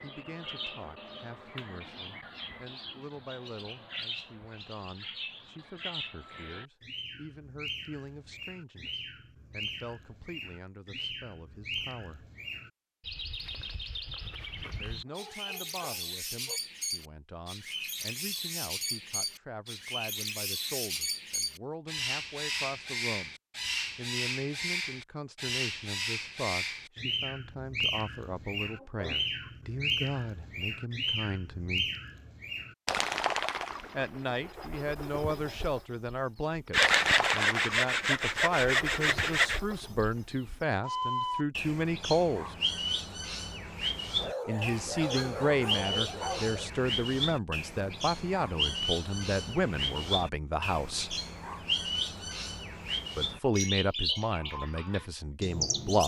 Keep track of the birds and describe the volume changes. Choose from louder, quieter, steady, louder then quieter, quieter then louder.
louder.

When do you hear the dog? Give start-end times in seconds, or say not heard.
15.1-16.6, 28.6-29.5, 44.1-46.7.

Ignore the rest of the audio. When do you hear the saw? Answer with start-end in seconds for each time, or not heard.
36.7-39.6.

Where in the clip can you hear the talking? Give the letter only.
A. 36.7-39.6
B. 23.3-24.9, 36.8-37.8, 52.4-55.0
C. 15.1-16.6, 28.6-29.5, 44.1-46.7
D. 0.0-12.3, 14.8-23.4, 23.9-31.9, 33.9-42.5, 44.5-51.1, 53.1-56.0
D.